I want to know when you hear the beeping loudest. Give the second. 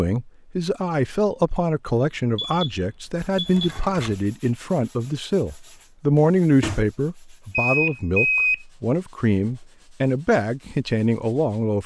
8 s.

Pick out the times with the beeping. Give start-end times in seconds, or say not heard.
2.4-3.7, 7.5-8.6.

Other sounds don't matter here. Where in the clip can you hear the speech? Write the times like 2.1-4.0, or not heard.
0.0-11.8.